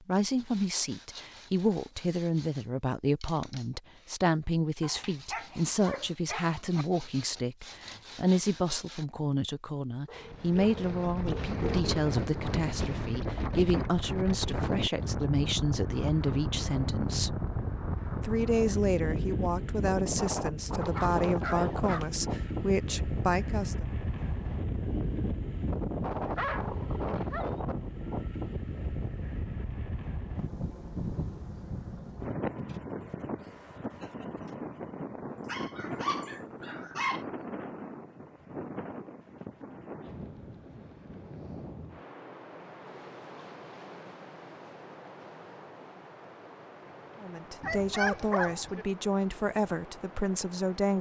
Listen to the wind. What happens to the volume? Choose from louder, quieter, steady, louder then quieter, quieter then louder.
quieter.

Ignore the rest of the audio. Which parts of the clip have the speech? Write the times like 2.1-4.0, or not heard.
0.1-17.4, 18.2-23.9, 47.2-50.9.